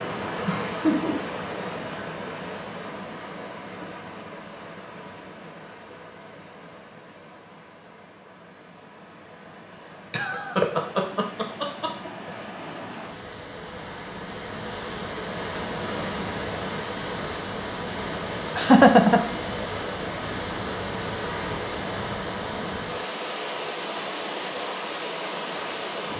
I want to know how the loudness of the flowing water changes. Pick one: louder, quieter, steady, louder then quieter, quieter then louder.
quieter then louder.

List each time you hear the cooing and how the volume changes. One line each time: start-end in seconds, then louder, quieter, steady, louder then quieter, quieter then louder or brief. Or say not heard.
not heard.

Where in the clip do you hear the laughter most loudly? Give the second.
19 s.